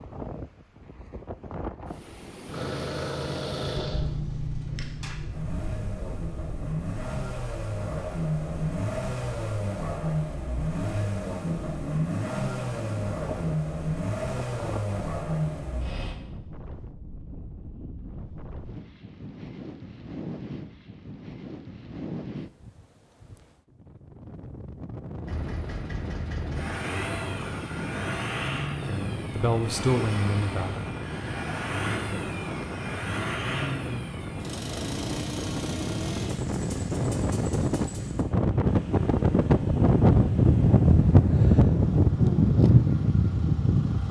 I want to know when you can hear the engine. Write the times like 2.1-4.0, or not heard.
2.5-16.2, 25.2-44.0.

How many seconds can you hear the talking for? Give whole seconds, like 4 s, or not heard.
2 s.